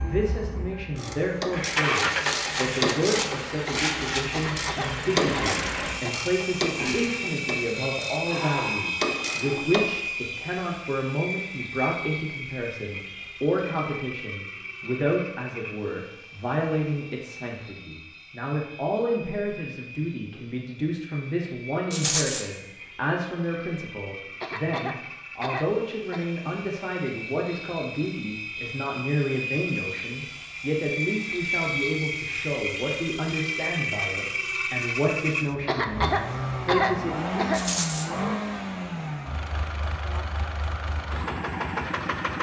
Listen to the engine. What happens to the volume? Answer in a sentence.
The loudness of the engine goes down, then up.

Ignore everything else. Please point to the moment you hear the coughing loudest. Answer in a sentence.
The loudest moment of the coughing is at 37 seconds.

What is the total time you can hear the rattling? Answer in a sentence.
The rattling can be heard for 4 seconds in total.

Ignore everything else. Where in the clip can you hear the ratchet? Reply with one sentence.
You can hear the ratchet from 0.9 to 10.0 s.